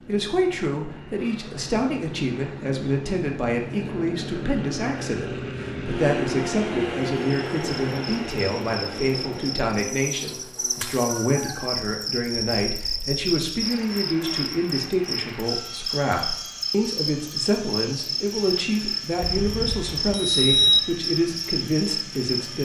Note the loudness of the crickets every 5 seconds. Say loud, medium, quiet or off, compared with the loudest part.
off, medium, loud, loud, loud.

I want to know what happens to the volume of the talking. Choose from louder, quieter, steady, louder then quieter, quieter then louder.
steady.